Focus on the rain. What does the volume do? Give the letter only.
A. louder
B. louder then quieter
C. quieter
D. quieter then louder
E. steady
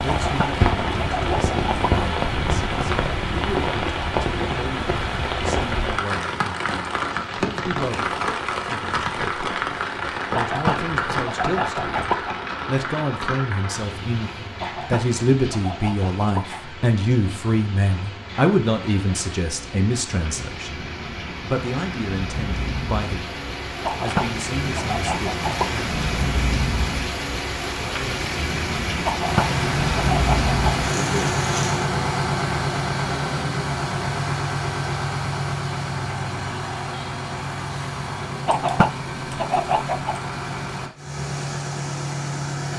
D.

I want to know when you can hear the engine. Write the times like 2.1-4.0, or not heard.
29.2-42.7.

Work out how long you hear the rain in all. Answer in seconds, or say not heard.
32 s.